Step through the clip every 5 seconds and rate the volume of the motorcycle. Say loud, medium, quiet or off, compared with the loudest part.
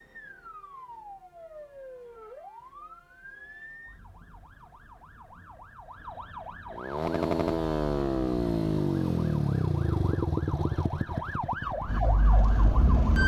off, loud, medium.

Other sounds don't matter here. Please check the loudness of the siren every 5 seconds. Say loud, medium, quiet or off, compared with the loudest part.
quiet, quiet, loud.